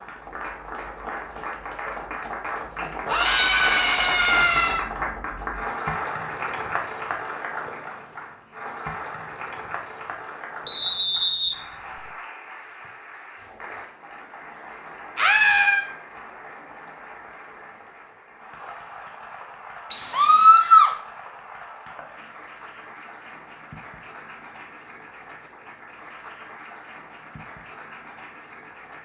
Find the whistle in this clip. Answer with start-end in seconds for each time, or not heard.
3.4-4.2, 10.7-12.1, 19.9-20.6.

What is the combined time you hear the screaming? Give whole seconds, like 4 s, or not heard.
3 s.